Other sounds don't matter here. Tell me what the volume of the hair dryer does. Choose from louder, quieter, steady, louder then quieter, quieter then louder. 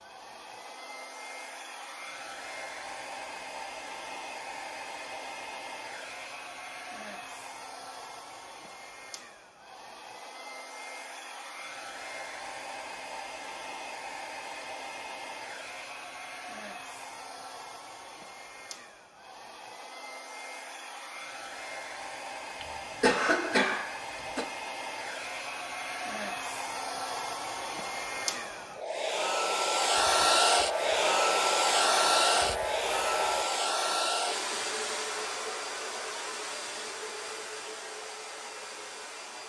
louder.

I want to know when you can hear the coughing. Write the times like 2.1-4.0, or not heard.
22.6-24.4.